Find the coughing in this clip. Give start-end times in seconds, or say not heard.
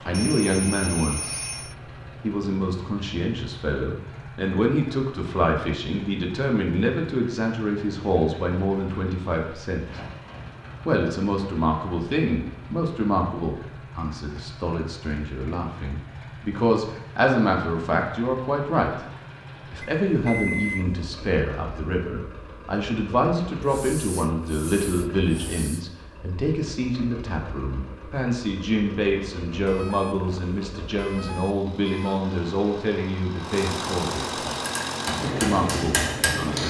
not heard.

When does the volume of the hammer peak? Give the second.
36 s.